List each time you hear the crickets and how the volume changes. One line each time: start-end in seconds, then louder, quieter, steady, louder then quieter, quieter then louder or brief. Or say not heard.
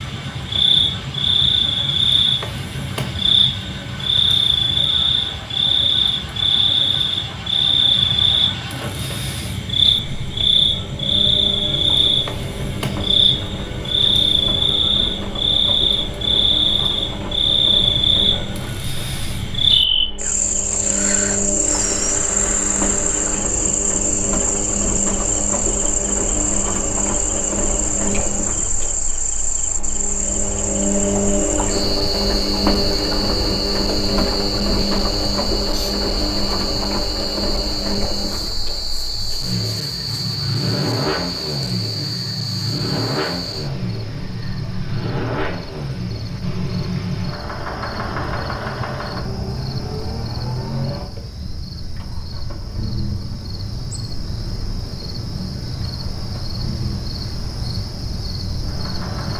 0.0-59.3 quieter.